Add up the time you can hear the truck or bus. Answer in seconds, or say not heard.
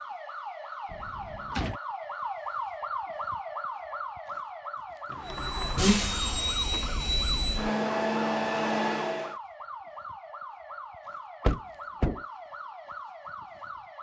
4 s.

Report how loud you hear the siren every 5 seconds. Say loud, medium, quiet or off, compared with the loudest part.
loud, medium, medium.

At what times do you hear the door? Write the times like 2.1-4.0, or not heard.
0.8-1.8, 5.0-7.0, 11.4-12.2.